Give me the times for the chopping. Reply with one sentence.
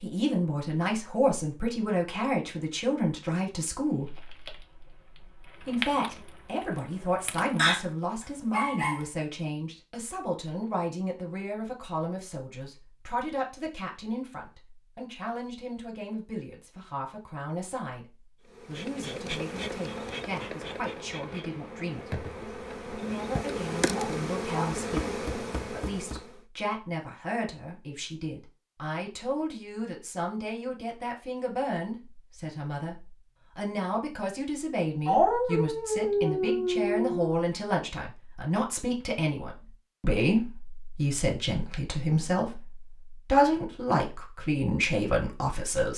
You can hear the chopping from 24.8 to 26.2 s.